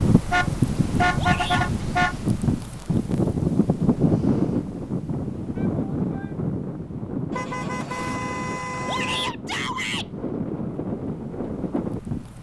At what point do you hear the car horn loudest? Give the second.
1 s.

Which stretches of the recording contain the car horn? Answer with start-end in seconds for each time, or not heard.
0.3-2.1, 7.3-9.3.